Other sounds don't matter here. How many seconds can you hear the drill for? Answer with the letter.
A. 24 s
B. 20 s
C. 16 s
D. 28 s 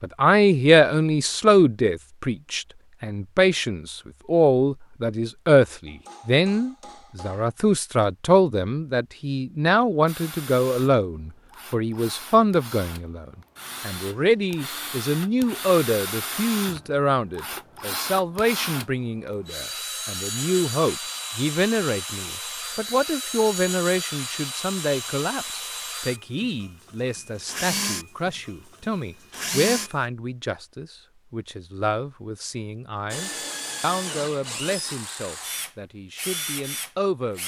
A.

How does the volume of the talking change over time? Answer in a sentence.
The volume of the talking goes down.